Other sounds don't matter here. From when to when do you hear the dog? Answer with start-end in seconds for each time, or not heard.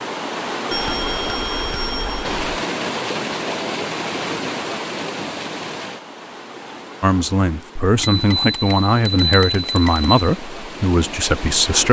not heard.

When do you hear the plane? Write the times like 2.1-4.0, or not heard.
not heard.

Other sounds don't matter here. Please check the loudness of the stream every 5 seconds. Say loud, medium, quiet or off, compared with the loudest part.
loud, medium, medium.